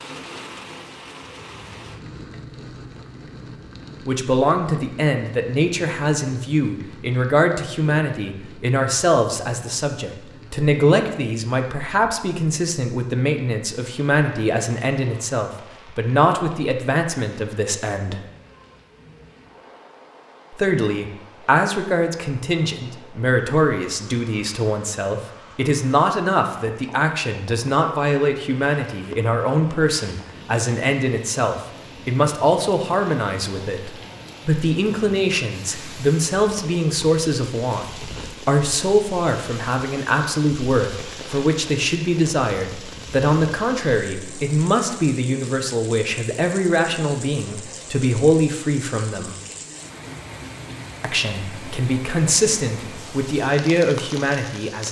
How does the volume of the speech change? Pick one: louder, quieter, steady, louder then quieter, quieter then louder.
steady.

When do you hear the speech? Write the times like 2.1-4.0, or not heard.
4.0-18.2, 20.5-49.4, 51.0-54.8.